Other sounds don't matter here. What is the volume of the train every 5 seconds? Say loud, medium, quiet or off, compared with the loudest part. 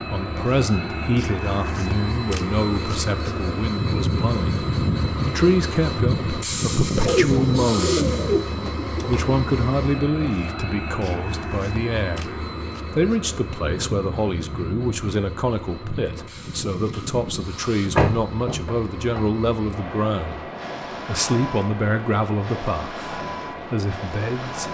loud, loud, medium, medium, medium.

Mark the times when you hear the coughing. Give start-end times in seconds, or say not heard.
not heard.